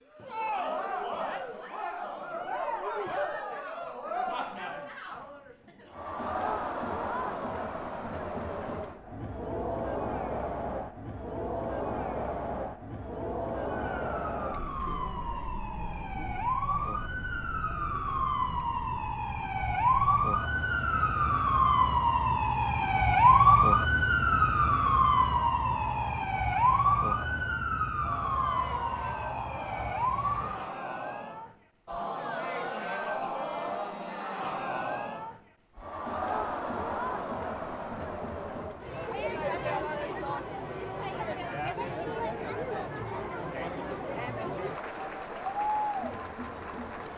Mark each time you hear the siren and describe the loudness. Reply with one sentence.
You can hear the siren from 13.7 to 30.6 s, getting louder then quieter.